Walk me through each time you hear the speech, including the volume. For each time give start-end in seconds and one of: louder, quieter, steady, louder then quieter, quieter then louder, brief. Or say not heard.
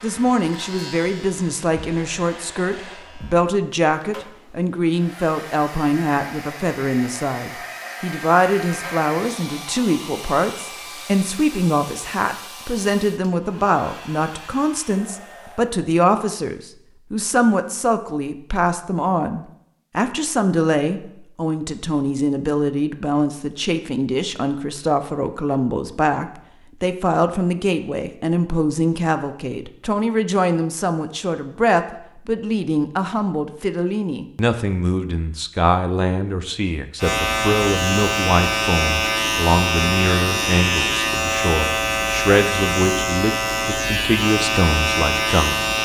0.0-45.7 steady.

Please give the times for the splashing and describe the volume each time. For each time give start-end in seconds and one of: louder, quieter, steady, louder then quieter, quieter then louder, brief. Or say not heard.
not heard.